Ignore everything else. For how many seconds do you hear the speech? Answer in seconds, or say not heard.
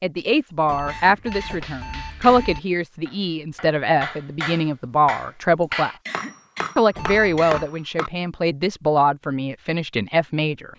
10 s.